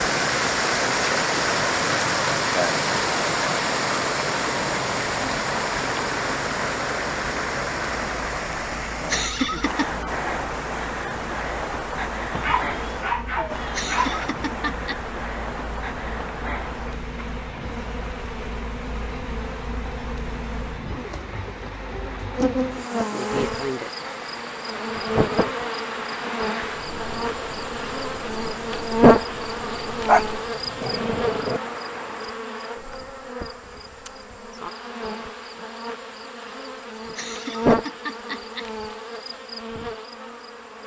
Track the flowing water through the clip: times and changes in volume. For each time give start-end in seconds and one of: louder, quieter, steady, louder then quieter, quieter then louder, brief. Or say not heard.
0.0-32.4 quieter.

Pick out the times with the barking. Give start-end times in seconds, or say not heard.
12.3-14.2, 30.1-31.6.